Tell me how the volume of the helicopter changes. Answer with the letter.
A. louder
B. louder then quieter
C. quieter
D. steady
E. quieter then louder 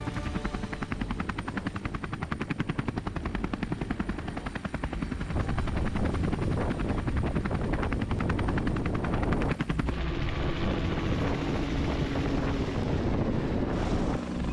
D.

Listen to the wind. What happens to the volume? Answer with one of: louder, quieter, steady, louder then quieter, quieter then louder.
louder.